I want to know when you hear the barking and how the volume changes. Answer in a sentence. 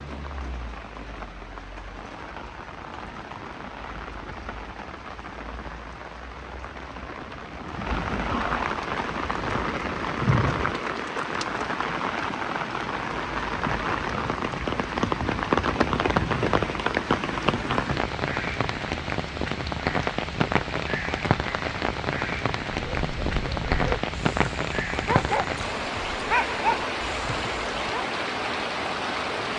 You can hear the barking from 22.9 to 28.2 s, getting louder then quieter.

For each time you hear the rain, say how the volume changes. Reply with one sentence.
The rain can be heard from 0.0 to 29.5 s, getting louder.